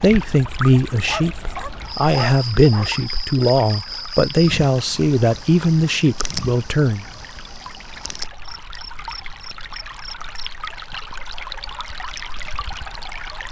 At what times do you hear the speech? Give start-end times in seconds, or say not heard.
0.0-7.0.